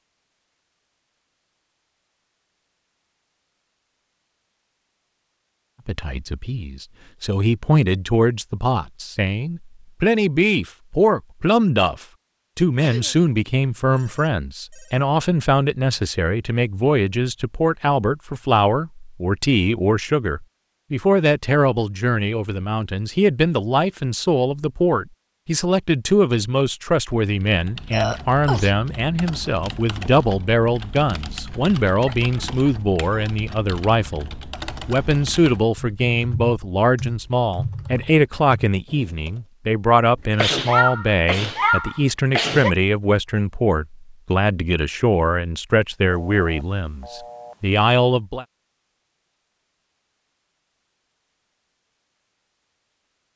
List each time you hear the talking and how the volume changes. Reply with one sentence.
The talking can be heard from 5.8 to 48.5 s, at a steady volume.